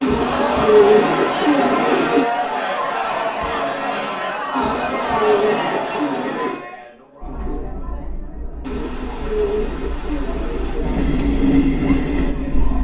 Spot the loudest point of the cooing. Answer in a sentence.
The loudest moment of the cooing is at 1 second.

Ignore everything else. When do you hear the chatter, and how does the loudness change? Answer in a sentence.
You can hear the chatter from 0.1 to 12.7 s, getting quieter.